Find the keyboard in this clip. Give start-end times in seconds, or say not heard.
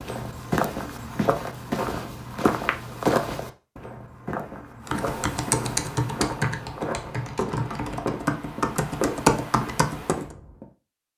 4.8-10.3.